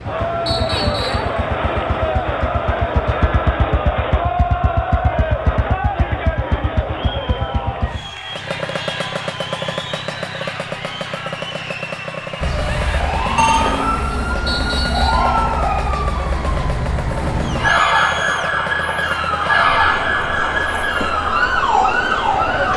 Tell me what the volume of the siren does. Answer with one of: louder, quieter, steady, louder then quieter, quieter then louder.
steady.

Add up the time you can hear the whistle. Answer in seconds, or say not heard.
2 s.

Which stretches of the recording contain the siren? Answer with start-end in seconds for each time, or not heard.
12.4-22.7.